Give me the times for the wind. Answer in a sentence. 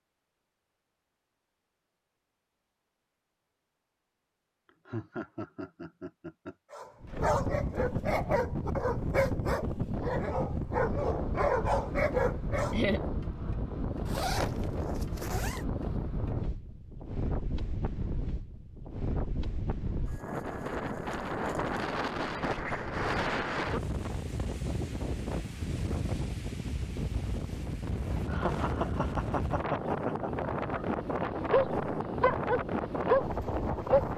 You can hear the wind from 7.0 to 34.1 s.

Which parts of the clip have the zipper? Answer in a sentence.
You can hear the zipper from 14.1 to 15.7 s.